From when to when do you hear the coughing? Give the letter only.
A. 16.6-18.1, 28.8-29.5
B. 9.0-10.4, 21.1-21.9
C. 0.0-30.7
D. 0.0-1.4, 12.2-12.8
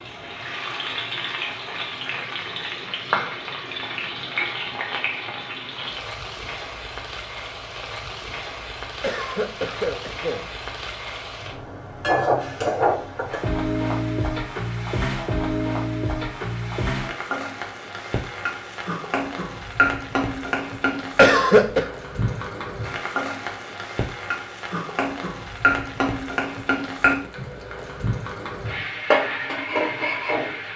B.